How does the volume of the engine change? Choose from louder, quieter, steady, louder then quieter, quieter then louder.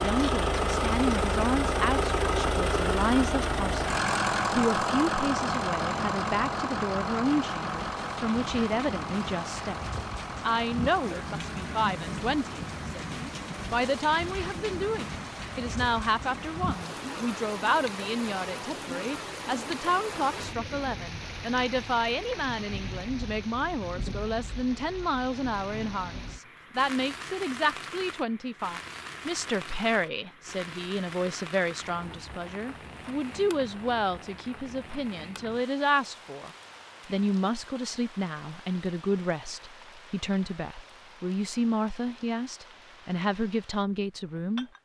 quieter.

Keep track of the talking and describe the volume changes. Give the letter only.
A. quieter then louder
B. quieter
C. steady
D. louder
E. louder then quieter
C.